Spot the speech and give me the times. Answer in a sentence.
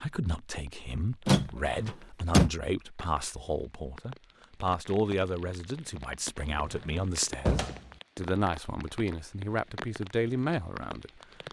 You can hear the speech from 0.0 to 11.2 s.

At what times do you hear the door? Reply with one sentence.
The door can be heard from 1.2 to 2.5 s and from 6.3 to 7.9 s.